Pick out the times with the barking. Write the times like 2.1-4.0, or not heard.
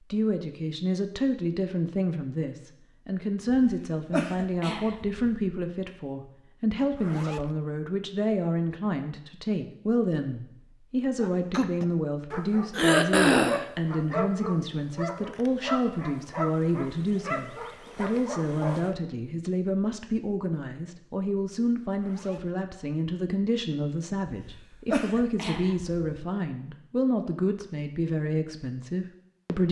11.2-18.9.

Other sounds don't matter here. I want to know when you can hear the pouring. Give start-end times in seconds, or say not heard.
not heard.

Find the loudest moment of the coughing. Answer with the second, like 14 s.
13 s.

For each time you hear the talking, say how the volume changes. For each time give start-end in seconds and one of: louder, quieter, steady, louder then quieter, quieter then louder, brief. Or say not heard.
0.1-29.6 steady.